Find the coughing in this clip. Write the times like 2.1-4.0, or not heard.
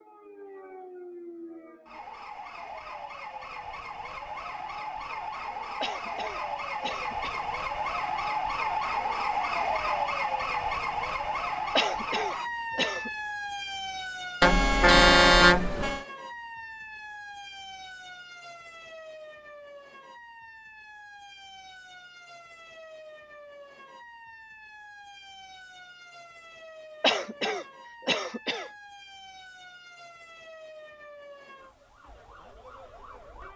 5.8-7.5, 11.8-13.1, 27.0-28.7.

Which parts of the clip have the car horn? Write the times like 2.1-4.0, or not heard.
14.4-16.0.